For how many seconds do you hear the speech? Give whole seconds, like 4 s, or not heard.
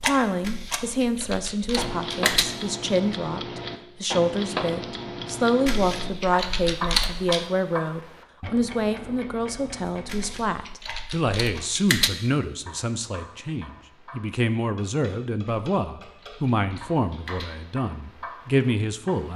19 s.